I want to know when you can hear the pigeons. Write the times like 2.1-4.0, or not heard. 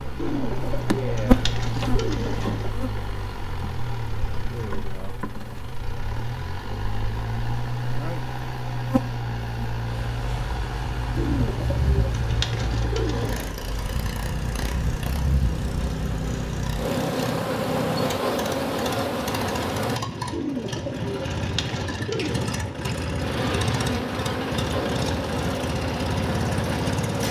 0.1-2.8, 11.2-13.6, 20.3-22.4.